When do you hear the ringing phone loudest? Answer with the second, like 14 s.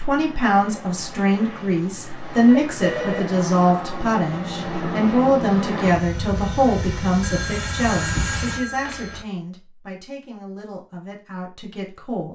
3 s.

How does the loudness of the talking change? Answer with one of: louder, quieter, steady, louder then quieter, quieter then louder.
quieter.